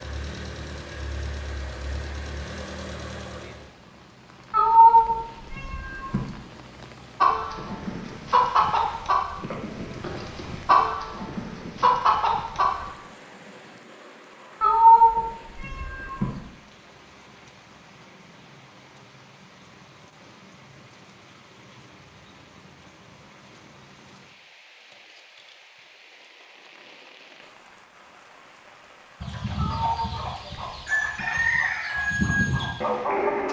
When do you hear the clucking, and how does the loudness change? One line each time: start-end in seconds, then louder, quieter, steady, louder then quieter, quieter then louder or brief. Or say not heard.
7.2-12.8 quieter then louder
29.2-33.4 louder.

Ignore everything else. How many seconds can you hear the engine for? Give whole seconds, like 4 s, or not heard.
4 s.